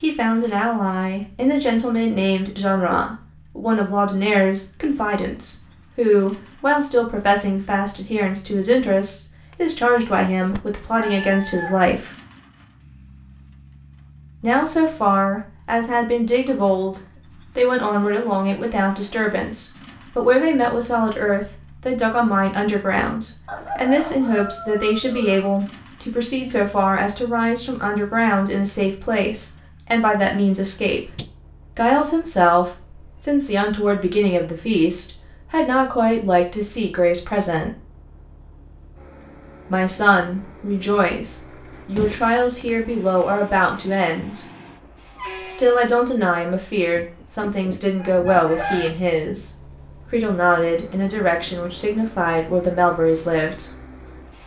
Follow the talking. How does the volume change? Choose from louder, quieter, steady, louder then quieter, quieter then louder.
steady.